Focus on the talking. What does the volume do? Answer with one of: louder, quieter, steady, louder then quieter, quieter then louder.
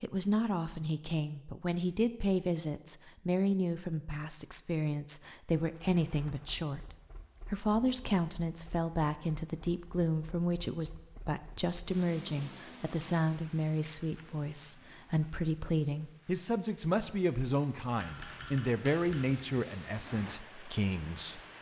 steady.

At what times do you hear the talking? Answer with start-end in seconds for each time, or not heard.
0.0-21.4.